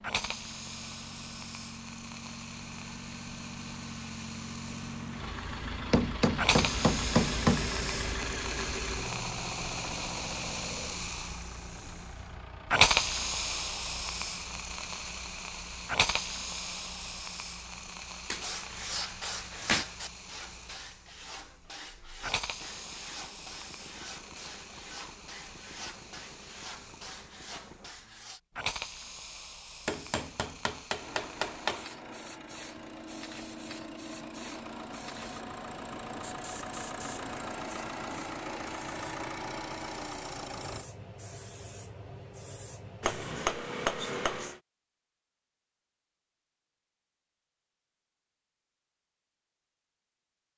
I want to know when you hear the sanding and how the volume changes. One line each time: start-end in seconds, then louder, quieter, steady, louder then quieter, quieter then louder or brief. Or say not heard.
18.4-28.4 quieter.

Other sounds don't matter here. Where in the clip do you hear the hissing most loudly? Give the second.
13 s.